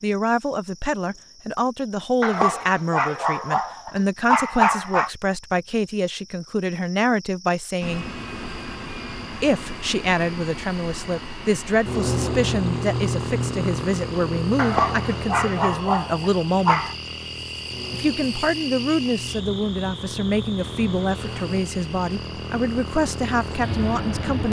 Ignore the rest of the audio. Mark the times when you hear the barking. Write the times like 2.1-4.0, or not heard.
2.2-5.1, 14.6-16.9.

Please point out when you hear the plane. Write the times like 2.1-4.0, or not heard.
7.8-24.4.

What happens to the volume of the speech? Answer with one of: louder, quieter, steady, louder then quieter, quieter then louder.
steady.